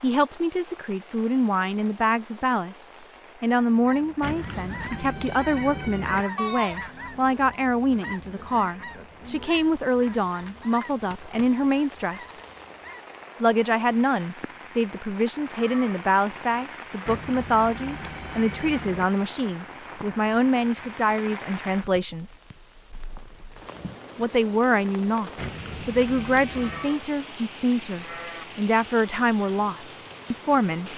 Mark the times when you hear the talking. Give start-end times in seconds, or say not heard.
0.0-12.3, 13.4-22.4, 24.1-30.9.